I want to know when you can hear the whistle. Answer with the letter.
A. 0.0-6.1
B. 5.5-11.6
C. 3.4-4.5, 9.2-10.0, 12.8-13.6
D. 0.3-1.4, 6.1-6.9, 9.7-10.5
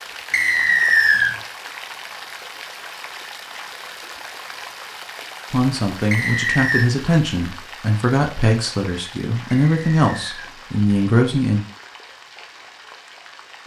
D.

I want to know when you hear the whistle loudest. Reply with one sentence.
The loudest moment of the whistle is at 1 second.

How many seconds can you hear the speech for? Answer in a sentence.
The speech can be heard for 6 seconds in total.